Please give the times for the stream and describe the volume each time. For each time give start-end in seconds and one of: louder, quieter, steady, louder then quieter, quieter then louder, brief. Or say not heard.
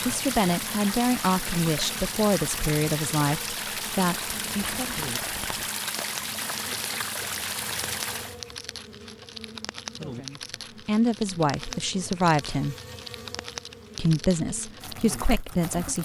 0.0-8.4 steady.